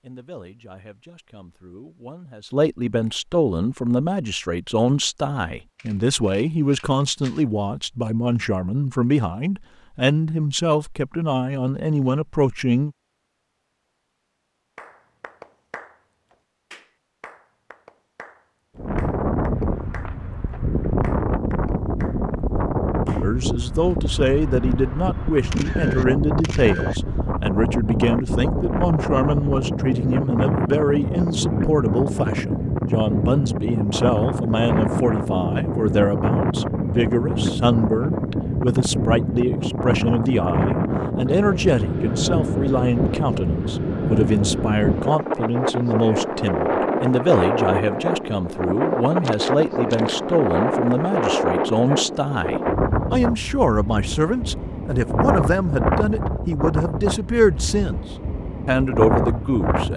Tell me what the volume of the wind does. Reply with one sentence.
The loudness of the wind stays about the same.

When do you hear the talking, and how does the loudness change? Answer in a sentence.
You can hear the talking from 0.0 to 12.9 s, getting louder; from 23.2 to 58.0 s, at a steady volume; and briefly from 58.6 to 59.9 s.